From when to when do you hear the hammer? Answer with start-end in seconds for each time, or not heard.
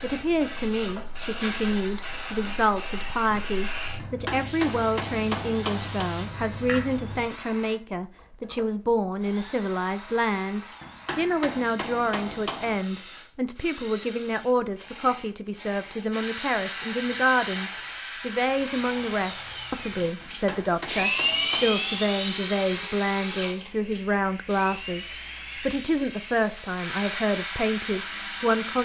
4.0-6.0, 10.8-12.8, 20.2-21.8.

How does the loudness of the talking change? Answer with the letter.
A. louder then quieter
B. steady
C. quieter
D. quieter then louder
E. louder
B.